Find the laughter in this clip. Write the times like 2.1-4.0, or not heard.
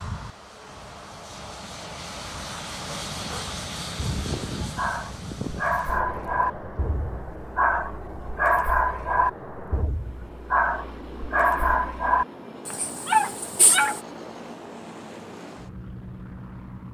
not heard.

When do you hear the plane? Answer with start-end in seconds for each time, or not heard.
0.0-16.8.